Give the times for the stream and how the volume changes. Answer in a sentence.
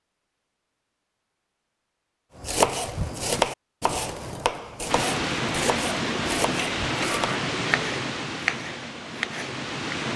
The stream can be heard from 4.8 to 10.1 s, getting quieter.